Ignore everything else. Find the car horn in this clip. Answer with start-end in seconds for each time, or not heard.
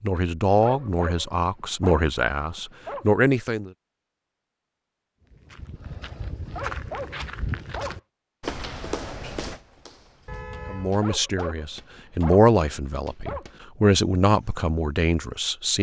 10.2-10.9.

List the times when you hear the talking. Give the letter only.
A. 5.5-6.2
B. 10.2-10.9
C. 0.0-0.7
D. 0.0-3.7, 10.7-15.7
D.